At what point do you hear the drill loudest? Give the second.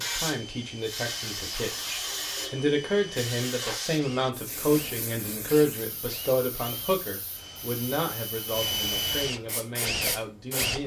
9 s.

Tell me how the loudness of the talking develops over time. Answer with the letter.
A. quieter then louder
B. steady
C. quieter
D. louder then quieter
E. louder
D.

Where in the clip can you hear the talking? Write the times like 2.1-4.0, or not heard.
0.0-10.8.